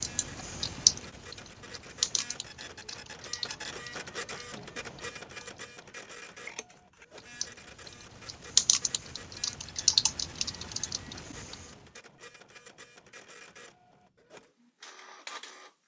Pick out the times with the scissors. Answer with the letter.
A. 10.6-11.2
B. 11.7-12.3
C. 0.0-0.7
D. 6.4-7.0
D.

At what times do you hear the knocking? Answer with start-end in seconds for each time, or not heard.
not heard.